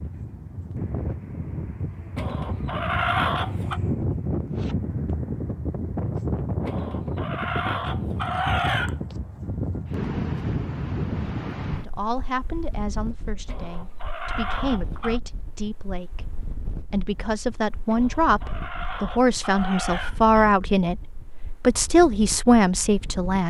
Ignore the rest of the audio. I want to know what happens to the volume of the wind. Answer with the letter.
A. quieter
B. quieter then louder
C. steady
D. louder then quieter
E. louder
A.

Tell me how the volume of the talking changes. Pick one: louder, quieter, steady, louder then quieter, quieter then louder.
louder.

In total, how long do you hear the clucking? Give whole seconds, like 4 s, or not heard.
8 s.